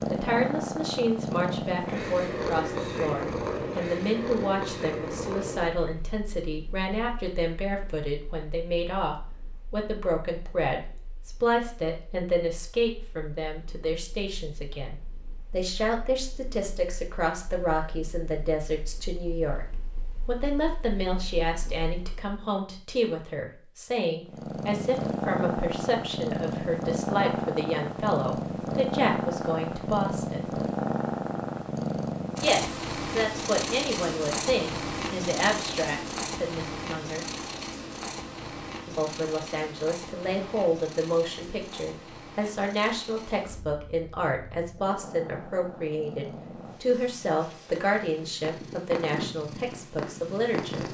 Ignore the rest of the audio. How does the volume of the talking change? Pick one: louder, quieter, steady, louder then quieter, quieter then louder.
steady.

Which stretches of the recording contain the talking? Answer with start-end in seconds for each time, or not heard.
0.1-30.6, 32.4-37.2, 38.9-50.8.